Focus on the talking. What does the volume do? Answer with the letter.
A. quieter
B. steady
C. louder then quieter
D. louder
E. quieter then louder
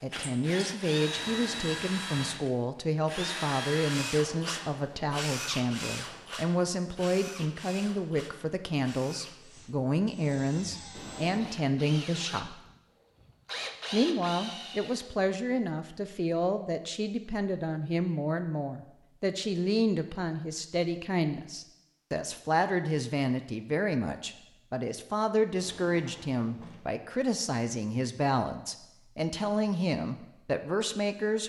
B.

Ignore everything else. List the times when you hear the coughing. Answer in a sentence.
The coughing can't be heard in this clip.